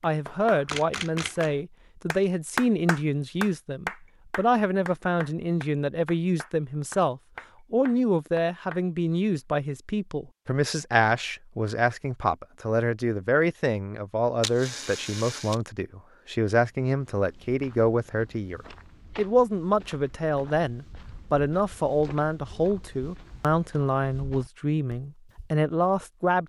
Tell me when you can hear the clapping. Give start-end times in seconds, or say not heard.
0.0-8.8.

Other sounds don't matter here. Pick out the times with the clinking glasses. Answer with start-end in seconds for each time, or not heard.
not heard.